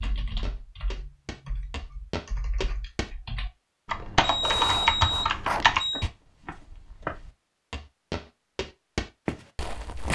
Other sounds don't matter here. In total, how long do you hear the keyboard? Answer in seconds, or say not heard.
6 s.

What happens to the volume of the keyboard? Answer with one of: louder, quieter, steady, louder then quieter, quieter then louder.
louder.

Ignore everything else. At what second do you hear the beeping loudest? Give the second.
5 s.